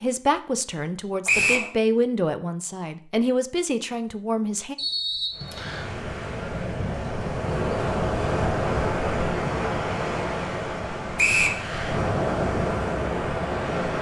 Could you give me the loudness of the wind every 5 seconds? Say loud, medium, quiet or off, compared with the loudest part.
off, loud, loud.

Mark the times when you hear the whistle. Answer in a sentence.
You can hear the whistle from 1.2 to 1.7 s, from 4.8 to 5.8 s and from 11.2 to 11.6 s.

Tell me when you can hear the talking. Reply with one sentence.
The talking can be heard from 0.0 to 4.8 s.